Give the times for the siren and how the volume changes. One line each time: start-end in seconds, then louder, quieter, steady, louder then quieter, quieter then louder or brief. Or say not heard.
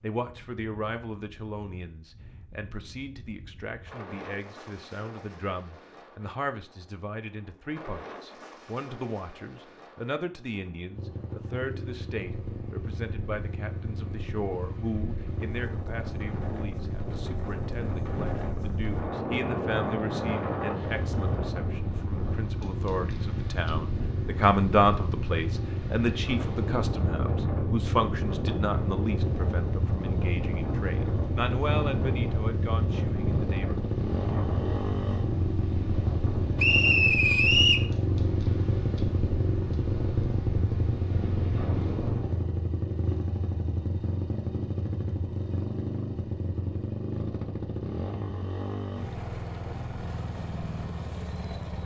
not heard.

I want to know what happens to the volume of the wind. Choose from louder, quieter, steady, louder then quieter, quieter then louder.
louder.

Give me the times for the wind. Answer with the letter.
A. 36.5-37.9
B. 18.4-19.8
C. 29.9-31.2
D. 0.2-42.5
D.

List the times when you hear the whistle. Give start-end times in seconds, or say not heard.
36.5-37.9.